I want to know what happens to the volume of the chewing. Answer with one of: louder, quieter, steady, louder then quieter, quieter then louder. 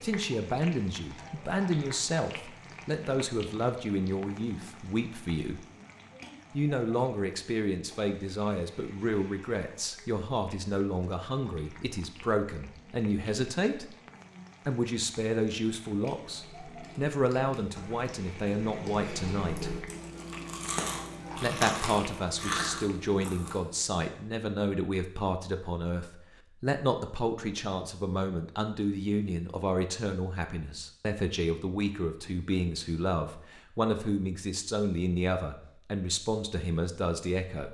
louder.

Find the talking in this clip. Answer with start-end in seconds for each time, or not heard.
0.0-5.7, 6.5-13.9, 14.7-19.8, 21.4-37.7.